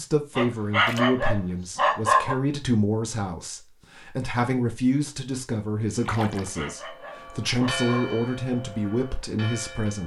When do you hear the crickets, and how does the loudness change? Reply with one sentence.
You can't hear the crickets here.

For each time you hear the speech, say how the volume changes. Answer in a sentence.
The speech can be heard from 0.0 to 10.0 s, at a steady volume.